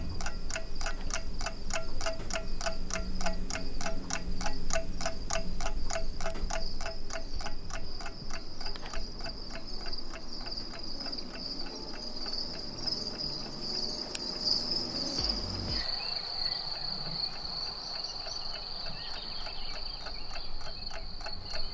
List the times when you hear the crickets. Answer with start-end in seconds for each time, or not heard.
0.0-21.6.